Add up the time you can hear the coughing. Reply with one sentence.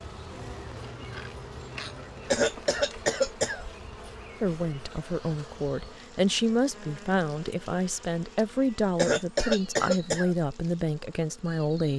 You can hear the coughing for 3 seconds altogether.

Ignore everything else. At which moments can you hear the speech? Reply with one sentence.
The speech can be heard from 4.4 to 11.9 s.